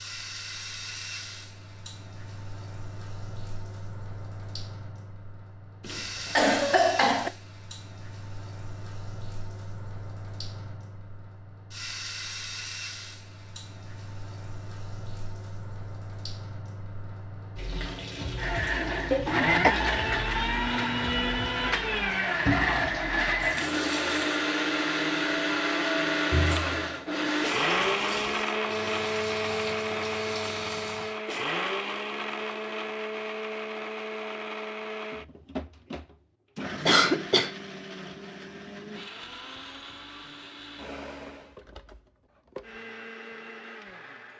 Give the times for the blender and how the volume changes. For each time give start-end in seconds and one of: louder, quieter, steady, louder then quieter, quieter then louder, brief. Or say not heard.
18.4-44.3 quieter.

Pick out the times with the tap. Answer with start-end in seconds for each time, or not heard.
0.0-31.2.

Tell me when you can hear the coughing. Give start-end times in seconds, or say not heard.
5.8-7.3, 19.1-19.8, 36.9-37.5.